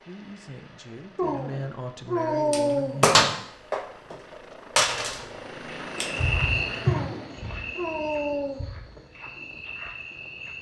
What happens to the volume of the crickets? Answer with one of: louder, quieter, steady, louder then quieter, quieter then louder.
quieter then louder.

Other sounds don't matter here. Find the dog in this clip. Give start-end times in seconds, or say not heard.
1.1-3.0, 6.8-8.7.